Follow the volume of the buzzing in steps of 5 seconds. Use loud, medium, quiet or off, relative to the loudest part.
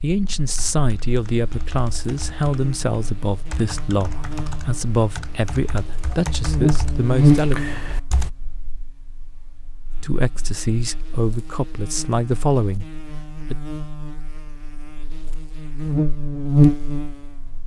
quiet, loud, quiet, loud.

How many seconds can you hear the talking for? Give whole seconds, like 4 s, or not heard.
11 s.